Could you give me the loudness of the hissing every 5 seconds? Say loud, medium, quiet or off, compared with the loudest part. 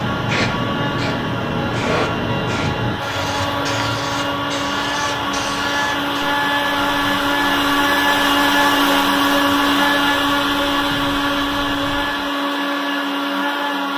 loud, medium, quiet.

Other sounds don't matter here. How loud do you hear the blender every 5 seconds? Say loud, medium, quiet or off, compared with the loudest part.
medium, loud, loud.